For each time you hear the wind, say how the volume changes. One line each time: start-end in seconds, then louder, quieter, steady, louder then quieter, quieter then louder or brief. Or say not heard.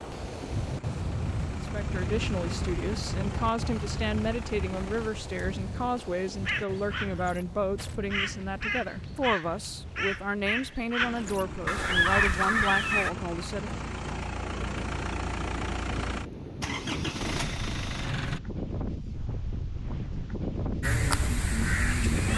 0.0-22.3 quieter then louder.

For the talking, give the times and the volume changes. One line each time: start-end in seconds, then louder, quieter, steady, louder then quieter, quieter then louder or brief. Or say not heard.
1.6-13.7 steady.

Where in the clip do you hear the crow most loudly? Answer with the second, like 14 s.
12 s.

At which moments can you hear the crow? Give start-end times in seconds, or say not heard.
6.5-13.1, 20.8-22.3.